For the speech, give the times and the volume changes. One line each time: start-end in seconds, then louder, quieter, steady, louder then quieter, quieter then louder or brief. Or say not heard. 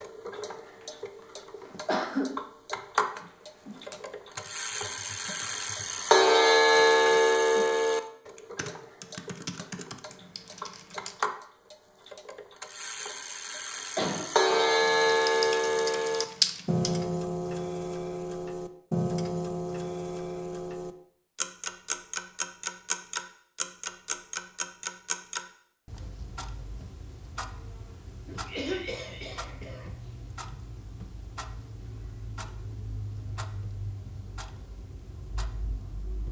not heard.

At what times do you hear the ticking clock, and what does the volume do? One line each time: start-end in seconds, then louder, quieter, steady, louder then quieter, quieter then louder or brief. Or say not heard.
0.0-36.2 quieter.